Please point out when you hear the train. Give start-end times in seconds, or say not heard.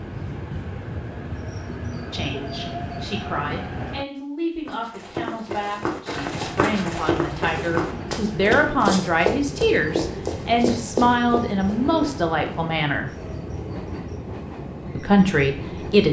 0.0-4.0, 6.1-16.0.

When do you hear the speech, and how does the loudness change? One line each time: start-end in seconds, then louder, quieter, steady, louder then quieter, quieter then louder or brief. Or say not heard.
2.1-13.1 louder
14.9-16.0 brief.